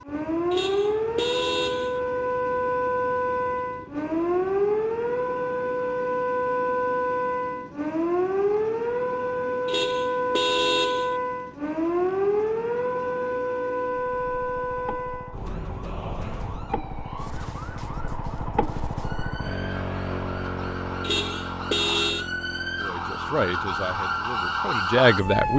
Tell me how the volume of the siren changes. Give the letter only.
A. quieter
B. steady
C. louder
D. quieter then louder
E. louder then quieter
D.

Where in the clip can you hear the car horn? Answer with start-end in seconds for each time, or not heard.
0.5-2.0, 9.7-11.2, 21.0-22.2.